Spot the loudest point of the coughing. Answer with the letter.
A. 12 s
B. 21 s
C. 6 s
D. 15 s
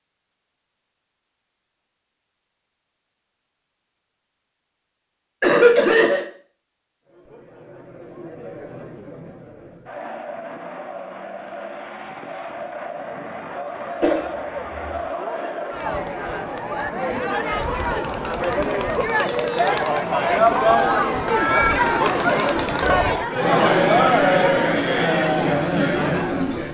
C.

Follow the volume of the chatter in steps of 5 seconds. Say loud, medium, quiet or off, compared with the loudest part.
off, quiet, quiet, medium, loud, loud.